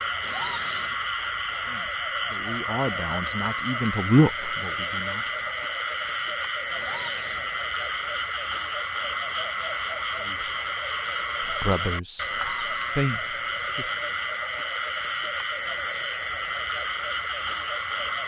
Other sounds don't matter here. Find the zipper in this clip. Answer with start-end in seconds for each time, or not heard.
0.2-0.9, 6.8-7.5, 12.2-13.0.